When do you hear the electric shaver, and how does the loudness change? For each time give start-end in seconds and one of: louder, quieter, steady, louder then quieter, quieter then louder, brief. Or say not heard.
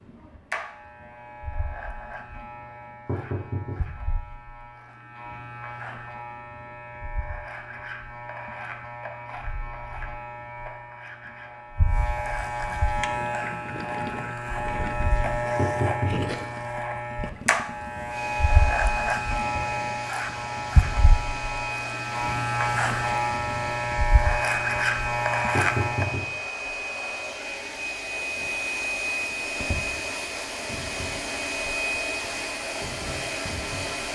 0.0-26.2 louder.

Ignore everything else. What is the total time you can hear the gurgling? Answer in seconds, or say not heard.
5 s.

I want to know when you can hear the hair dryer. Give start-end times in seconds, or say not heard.
18.1-34.1.